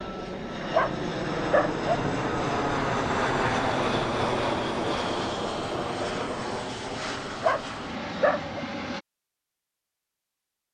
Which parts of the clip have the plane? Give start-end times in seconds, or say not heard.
0.0-9.1.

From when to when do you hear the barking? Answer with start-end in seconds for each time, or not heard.
0.7-1.9, 7.4-8.6.